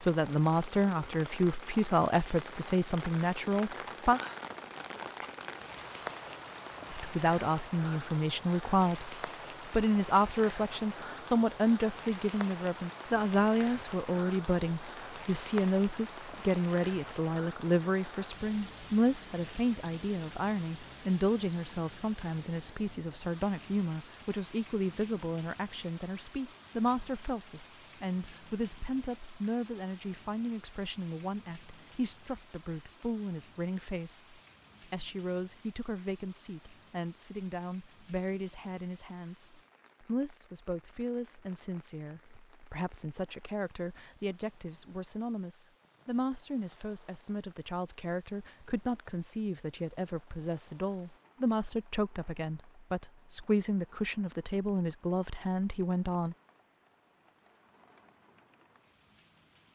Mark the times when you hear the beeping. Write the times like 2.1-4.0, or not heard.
not heard.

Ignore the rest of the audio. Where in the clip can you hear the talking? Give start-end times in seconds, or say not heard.
0.0-4.2, 6.9-56.4.